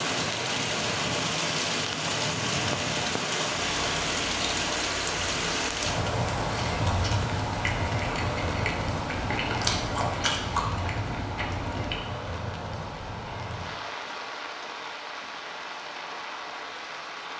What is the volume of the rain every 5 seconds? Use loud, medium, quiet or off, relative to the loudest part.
loud, loud, medium, medium.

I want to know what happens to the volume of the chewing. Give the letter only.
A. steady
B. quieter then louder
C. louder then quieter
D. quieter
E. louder
E.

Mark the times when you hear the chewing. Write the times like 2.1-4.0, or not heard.
3.8-12.1.